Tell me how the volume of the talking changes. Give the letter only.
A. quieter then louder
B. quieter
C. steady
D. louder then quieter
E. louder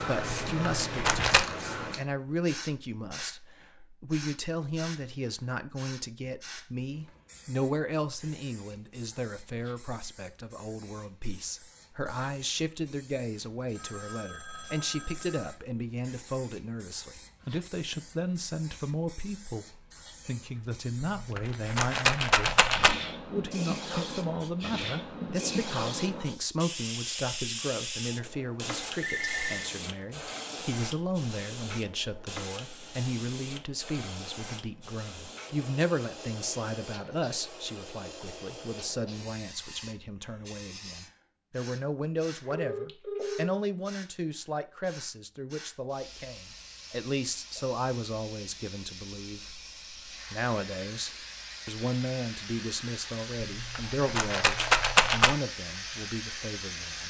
C.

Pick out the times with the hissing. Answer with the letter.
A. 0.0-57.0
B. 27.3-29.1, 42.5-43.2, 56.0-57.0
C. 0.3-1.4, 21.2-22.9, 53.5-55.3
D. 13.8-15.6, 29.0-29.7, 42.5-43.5
A.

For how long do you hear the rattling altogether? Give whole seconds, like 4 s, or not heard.
5 s.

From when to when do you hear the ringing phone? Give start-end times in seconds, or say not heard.
13.8-15.6, 29.0-29.7, 42.5-43.5.